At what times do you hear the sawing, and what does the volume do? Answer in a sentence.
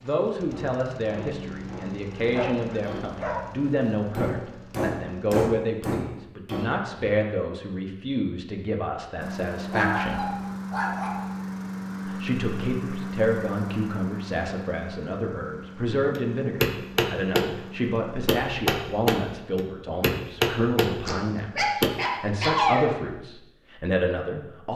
You can't hear the sawing here.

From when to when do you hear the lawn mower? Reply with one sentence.
The lawn mower can be heard from 0.0 to 5.5 s and from 9.2 to 18.3 s.